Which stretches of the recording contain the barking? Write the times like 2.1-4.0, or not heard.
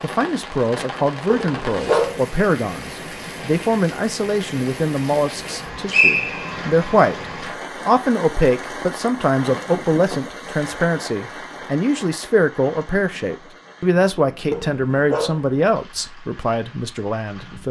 1.2-2.2, 14.5-15.4.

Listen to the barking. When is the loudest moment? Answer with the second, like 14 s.
2 s.